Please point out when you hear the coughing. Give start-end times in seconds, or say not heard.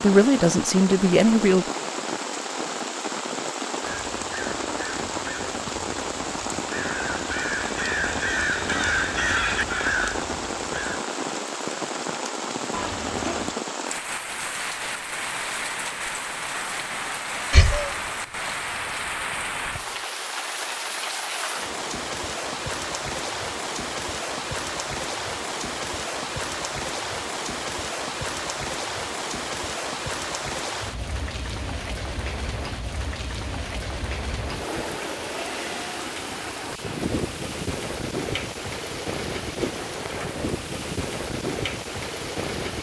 17.5-19.8.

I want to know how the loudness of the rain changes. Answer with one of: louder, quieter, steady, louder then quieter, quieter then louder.
steady.